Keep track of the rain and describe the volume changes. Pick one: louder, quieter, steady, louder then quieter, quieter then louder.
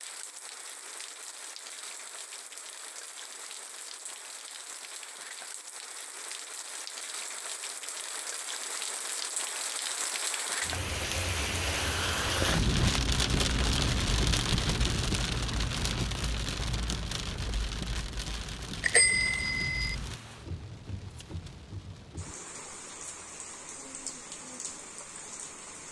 louder then quieter.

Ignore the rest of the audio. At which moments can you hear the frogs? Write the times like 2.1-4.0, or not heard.
not heard.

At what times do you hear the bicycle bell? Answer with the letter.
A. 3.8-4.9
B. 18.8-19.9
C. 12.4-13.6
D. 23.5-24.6
B.